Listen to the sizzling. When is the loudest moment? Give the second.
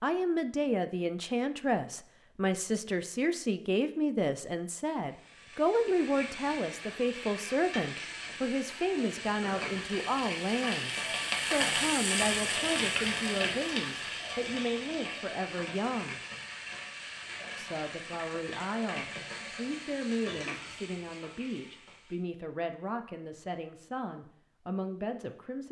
12 s.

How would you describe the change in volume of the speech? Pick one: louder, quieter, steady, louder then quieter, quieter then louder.
quieter.